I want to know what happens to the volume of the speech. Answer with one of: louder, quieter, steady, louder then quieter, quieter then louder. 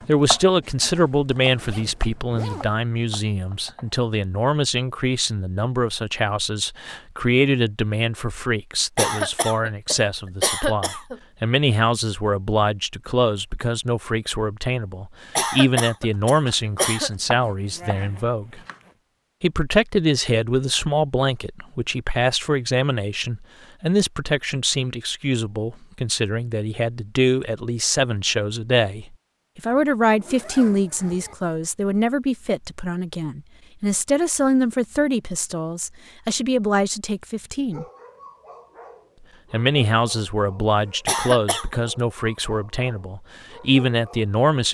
steady.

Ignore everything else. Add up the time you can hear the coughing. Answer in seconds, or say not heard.
5 s.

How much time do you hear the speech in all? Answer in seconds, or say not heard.
42 s.